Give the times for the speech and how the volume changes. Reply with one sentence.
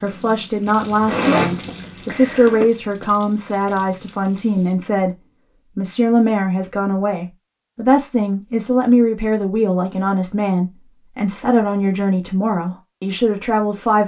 You can hear the speech from 0.0 to 14.0 s, at a steady volume.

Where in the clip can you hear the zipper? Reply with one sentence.
The zipper can be heard from 1.1 to 2.6 s.